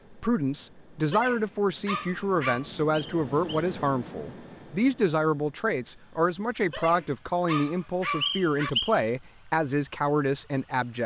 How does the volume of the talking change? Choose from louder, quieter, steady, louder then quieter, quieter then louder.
steady.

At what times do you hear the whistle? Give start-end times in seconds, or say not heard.
3.0-3.7, 8.2-8.9.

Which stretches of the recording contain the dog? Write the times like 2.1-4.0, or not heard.
1.1-2.6, 6.7-8.7.